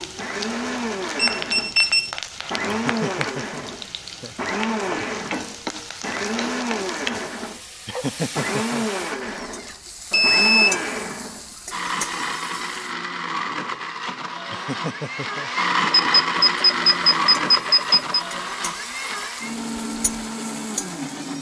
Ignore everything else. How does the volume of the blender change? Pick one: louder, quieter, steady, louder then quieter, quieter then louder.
steady.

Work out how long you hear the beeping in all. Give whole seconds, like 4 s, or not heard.
4 s.